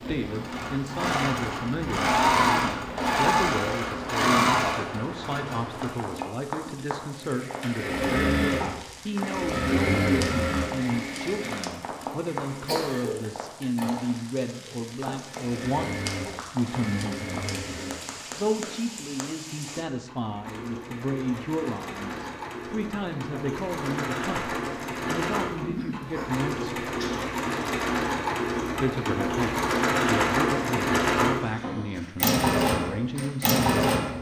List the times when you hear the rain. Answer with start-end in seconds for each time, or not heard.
0.0-19.9.